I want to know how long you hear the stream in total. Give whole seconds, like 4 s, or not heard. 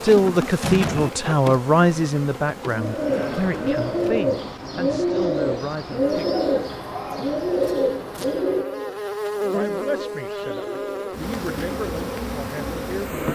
not heard.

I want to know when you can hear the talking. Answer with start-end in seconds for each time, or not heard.
0.0-6.2, 9.5-13.3.